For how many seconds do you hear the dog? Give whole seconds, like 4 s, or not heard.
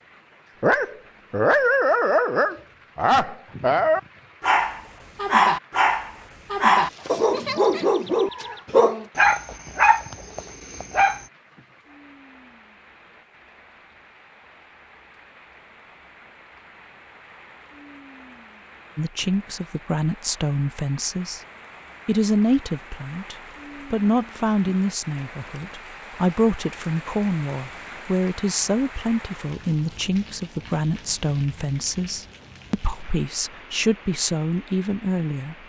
11 s.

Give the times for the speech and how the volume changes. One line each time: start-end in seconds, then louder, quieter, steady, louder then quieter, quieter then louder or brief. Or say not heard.
18.9-21.4 brief
22.1-35.5 steady.